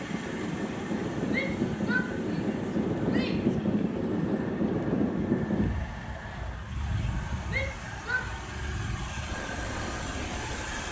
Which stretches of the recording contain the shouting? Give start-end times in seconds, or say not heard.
1.2-3.5, 7.5-8.3.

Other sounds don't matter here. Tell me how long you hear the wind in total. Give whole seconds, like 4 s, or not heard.
11 s.